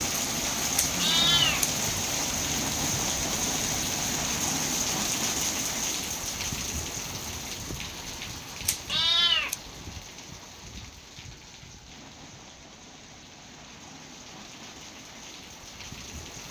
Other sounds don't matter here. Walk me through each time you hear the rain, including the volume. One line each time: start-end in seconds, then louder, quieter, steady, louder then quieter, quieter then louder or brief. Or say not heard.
0.0-16.4 quieter.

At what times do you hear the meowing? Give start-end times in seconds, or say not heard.
0.8-1.8, 8.7-9.6.